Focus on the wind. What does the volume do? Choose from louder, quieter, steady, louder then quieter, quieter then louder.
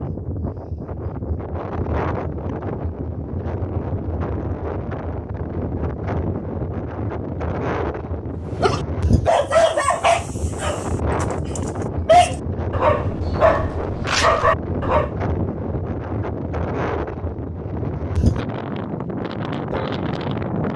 steady.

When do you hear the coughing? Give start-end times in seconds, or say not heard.
not heard.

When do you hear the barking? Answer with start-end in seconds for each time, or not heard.
8.5-15.1.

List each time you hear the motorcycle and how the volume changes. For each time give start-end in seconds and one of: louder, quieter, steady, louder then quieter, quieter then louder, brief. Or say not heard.
not heard.